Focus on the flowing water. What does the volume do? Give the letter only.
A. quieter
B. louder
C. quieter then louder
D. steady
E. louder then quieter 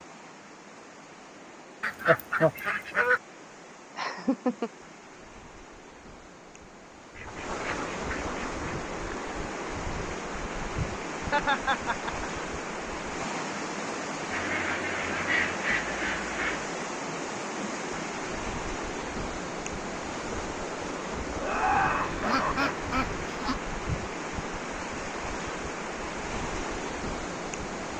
B.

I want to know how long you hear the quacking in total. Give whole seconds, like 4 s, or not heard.
7 s.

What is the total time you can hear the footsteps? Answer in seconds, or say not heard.
not heard.